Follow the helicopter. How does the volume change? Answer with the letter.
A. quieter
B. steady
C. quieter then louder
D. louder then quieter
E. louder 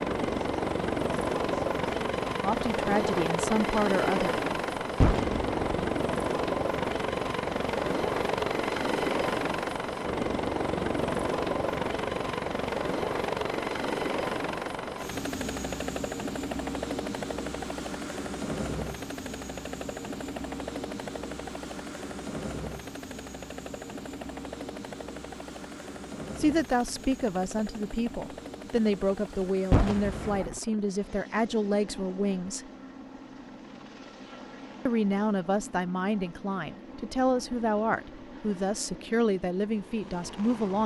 A.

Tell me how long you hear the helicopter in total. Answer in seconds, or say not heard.
41 s.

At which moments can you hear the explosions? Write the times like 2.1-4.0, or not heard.
5.0-5.6, 29.7-30.6.